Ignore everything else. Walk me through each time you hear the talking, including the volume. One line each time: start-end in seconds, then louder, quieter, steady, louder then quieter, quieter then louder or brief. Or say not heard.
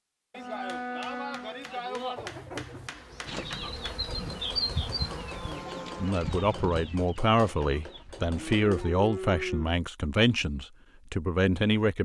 6.0-11.9 steady.